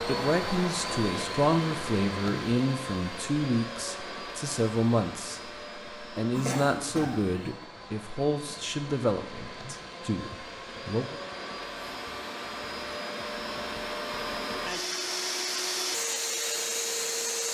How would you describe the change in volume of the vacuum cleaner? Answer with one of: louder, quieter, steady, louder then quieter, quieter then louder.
quieter then louder.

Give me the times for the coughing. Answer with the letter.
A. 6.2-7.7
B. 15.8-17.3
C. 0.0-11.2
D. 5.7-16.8
A.